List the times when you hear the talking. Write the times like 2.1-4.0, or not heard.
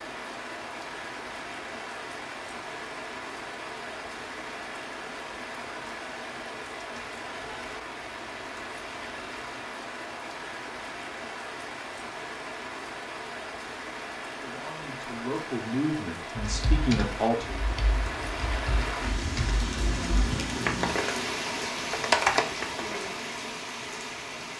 14.4-17.6.